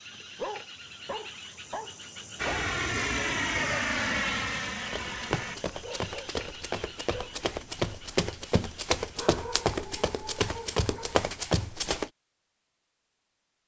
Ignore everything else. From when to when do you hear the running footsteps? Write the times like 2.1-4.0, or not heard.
4.8-12.1.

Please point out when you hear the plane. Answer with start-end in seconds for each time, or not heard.
2.4-5.6.